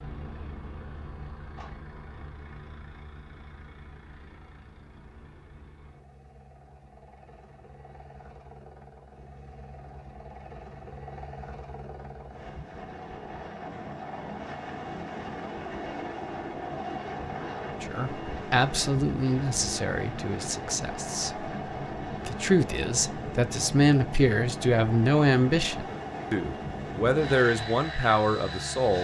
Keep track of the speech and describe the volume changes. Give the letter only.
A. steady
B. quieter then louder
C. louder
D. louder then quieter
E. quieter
B.